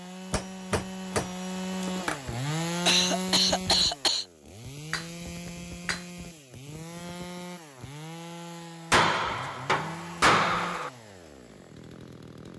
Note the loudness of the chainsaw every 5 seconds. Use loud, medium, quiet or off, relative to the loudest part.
loud, medium, medium.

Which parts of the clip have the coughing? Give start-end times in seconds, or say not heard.
1.8-4.2.